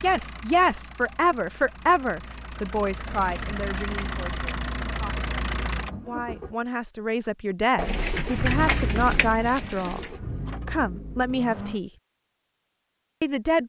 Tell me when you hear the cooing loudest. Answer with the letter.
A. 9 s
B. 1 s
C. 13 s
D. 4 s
A.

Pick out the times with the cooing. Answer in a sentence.
The cooing can be heard from 3.0 to 4.7 s and from 7.8 to 10.2 s.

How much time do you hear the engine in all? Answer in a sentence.
The engine can be heard for 10 seconds in total.